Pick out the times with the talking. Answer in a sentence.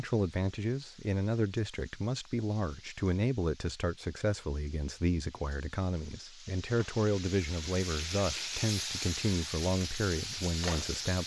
You can hear the talking from 0.0 to 11.2 s.